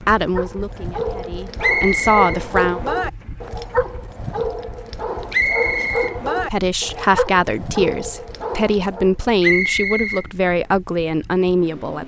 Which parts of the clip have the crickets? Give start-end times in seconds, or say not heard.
not heard.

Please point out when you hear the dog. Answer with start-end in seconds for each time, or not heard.
0.2-9.2.